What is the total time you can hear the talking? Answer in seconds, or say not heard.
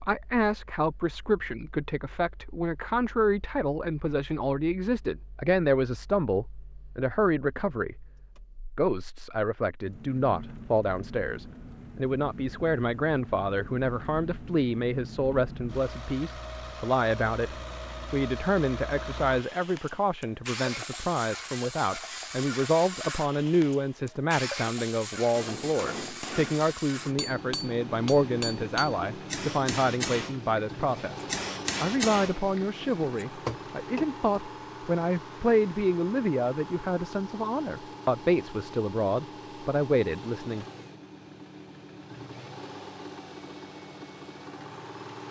40 s.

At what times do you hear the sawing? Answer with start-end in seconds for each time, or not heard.
not heard.